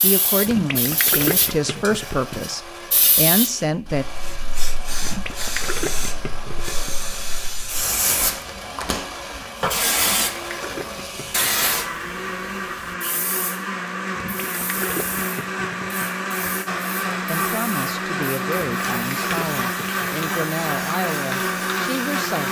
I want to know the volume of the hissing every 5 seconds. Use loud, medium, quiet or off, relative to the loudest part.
loud, loud, loud, medium, medium.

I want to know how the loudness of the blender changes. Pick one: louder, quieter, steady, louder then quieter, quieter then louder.
louder.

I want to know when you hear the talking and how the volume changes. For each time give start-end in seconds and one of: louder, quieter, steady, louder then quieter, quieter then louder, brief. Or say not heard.
0.0-4.0 quieter then louder
17.2-22.4 steady.